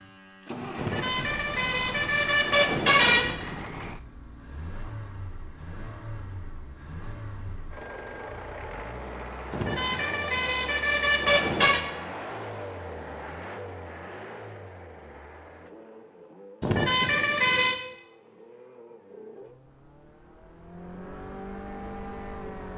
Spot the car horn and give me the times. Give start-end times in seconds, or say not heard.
0.8-3.4, 9.5-11.8, 16.6-17.8.